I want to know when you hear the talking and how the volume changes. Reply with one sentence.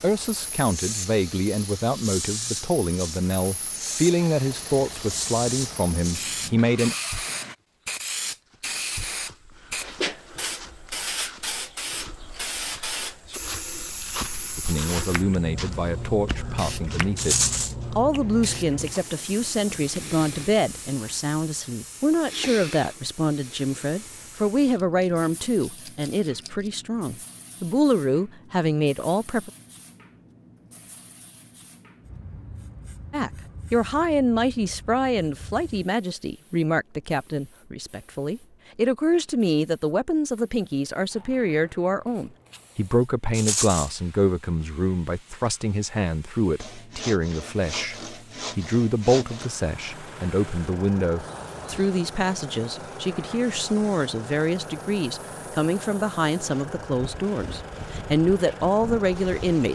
The talking can be heard from 0.0 to 7.0 s, at a steady volume; from 14.6 to 29.5 s, at a steady volume; and from 33.1 to 59.6 s, at a steady volume.